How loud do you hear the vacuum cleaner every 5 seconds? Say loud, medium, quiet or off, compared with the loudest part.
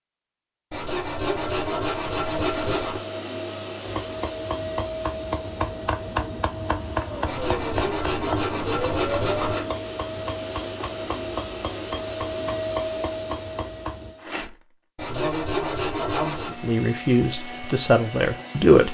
loud, loud, loud, medium.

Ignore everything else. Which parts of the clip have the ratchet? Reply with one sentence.
You can't hear the ratchet here.